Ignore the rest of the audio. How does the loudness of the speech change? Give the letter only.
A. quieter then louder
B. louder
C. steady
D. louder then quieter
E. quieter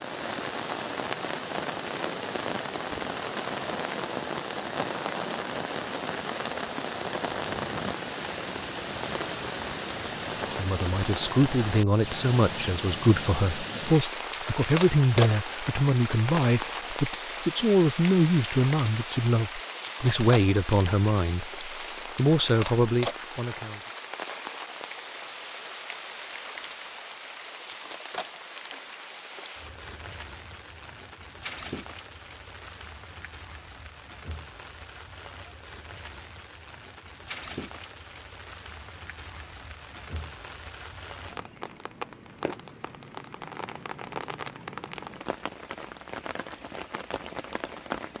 C.